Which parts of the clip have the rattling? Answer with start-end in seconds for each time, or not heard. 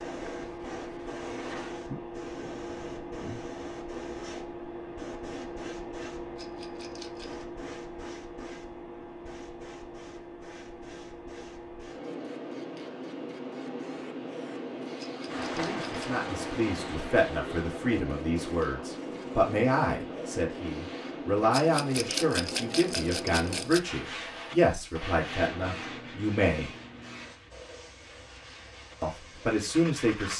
6.3-7.5, 14.9-16.1, 21.5-23.8.